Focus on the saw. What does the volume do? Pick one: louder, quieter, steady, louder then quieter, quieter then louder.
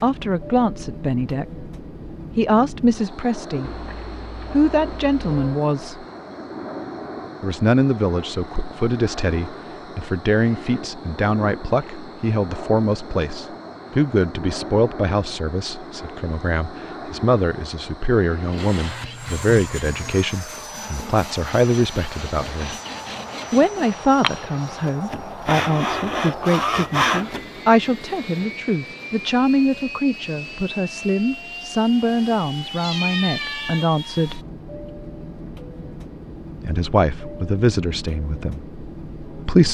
louder.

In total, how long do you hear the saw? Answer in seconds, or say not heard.
9 s.